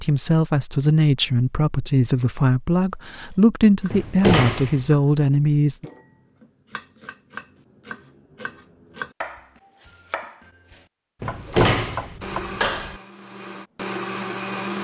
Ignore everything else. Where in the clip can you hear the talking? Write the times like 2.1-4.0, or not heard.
0.0-5.8.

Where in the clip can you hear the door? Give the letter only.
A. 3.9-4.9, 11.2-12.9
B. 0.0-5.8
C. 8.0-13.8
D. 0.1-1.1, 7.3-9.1
A.